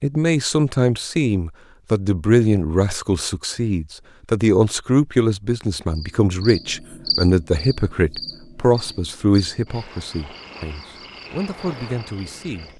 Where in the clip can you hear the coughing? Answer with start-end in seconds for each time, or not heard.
not heard.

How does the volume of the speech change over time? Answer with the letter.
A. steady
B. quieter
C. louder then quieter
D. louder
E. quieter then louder
B.